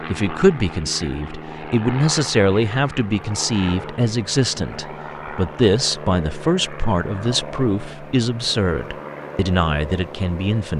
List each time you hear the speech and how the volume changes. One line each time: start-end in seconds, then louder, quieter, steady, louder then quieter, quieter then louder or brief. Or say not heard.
0.0-10.7 steady.